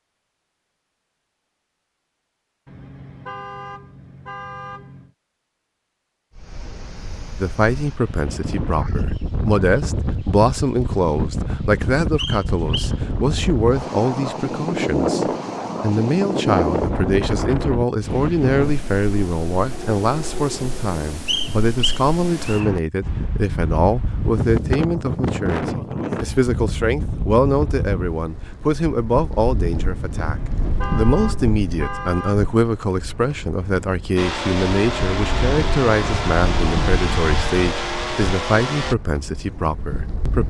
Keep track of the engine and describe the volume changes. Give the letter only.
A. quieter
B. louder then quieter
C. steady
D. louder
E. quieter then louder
C.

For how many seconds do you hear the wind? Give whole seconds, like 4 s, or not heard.
34 s.